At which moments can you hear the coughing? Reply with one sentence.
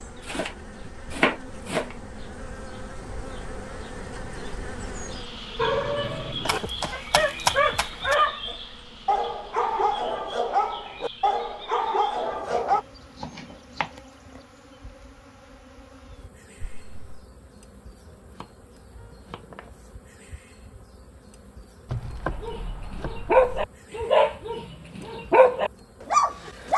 You can hear the coughing from 6.5 to 7.0 s and from 16.6 to 17.2 s.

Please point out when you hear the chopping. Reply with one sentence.
You can hear the chopping from 0.2 to 1.9 s, from 6.5 to 8.2 s, from 12.5 to 13.9 s, from 18.0 to 19.8 s and from 21.9 to 23.7 s.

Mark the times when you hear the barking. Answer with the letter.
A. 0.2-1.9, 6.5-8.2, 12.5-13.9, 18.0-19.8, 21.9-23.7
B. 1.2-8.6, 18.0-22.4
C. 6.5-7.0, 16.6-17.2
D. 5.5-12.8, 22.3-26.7
D.